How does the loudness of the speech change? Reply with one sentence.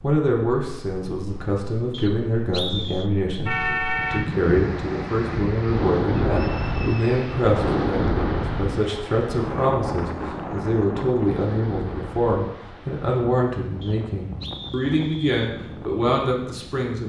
The loudness of the speech stays about the same.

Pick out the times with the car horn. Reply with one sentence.
You can hear the car horn from 3.5 to 4.3 s.